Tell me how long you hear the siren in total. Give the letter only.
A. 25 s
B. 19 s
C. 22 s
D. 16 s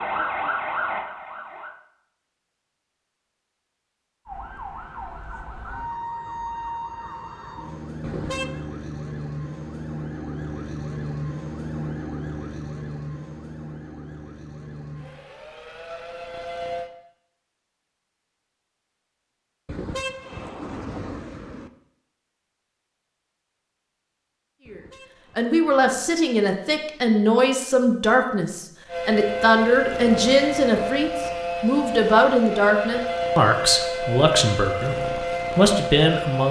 C.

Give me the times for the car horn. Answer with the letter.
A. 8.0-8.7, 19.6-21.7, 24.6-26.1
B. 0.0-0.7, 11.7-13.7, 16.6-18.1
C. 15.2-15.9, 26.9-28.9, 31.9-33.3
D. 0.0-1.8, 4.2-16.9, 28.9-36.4
A.